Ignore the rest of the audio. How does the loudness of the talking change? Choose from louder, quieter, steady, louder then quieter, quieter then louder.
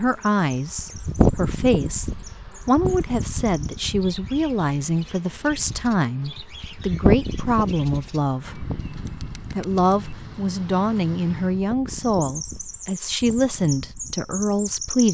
steady.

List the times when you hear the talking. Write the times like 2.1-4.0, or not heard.
0.0-15.0.